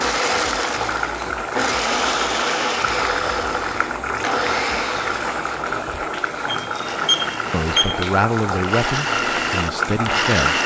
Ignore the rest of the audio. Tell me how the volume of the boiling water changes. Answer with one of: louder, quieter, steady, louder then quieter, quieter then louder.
steady.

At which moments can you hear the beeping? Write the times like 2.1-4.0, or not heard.
6.5-8.1.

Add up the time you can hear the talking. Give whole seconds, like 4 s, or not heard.
3 s.